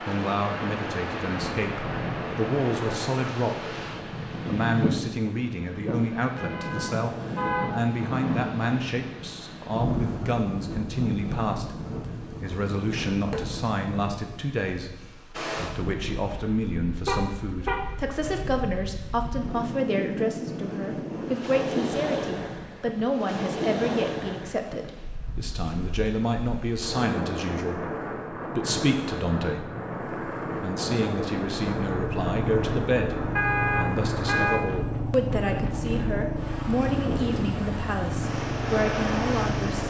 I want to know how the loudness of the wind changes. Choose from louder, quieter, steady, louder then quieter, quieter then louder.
steady.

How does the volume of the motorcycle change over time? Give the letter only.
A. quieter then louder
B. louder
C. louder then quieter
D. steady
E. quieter
D.